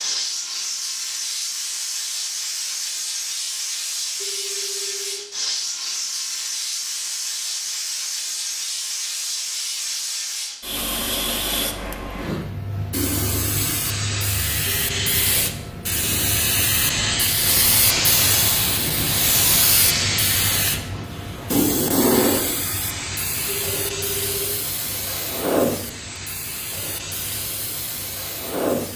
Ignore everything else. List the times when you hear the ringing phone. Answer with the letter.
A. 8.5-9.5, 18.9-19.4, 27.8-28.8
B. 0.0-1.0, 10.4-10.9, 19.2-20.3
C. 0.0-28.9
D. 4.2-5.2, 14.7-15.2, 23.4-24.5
D.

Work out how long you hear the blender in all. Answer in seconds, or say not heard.
not heard.